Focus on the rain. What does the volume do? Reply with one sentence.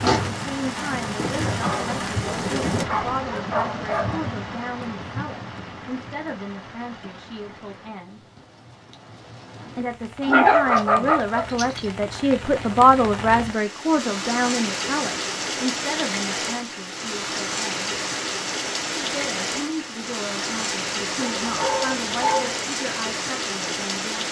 The volume of the rain goes down, then up.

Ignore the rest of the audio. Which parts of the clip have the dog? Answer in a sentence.
The dog can be heard from 1.6 to 4.2 s, from 10.2 to 11.8 s and from 21.4 to 22.6 s.